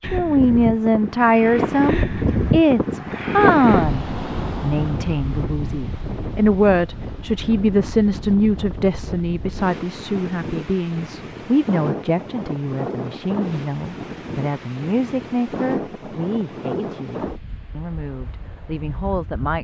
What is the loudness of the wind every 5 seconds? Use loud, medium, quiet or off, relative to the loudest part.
loud, medium, medium, medium.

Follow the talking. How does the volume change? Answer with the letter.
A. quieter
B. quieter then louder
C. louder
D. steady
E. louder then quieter
A.